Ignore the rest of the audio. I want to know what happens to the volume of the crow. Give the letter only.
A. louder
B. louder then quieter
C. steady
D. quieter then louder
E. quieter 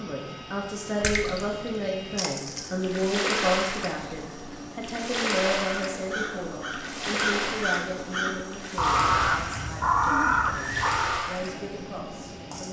A.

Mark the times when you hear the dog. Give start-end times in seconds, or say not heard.
not heard.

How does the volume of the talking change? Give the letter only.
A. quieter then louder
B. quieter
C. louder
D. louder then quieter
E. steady
B.